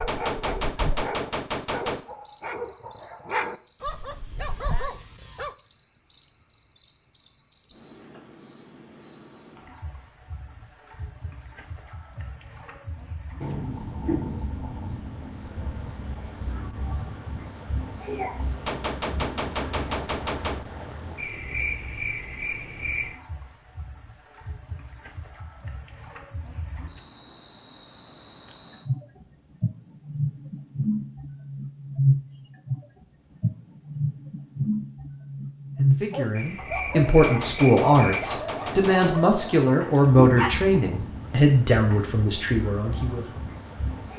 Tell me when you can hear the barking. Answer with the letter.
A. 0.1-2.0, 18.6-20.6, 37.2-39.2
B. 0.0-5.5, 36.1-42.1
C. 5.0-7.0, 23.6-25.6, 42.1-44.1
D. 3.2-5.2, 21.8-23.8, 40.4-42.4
B.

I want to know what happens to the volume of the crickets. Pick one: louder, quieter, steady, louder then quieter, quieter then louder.
louder.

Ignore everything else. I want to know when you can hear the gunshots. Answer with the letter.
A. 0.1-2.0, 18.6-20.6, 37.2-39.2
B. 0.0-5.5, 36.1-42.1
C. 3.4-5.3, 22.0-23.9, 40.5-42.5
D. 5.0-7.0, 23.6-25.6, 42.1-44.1
A.